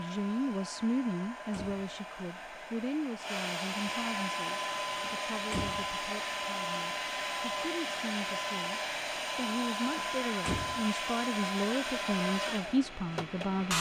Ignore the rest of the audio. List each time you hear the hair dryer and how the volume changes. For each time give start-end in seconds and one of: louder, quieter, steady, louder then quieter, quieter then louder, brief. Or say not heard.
0.0-13.7 louder.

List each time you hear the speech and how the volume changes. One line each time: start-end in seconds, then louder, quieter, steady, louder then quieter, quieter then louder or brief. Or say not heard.
0.0-13.7 quieter then louder.